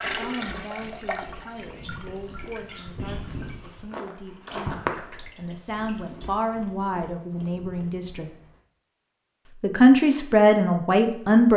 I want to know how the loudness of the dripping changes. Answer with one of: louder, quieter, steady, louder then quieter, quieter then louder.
quieter then louder.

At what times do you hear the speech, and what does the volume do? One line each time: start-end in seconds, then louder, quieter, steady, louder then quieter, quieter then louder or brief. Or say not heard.
0.0-8.3 louder
9.6-11.5 brief.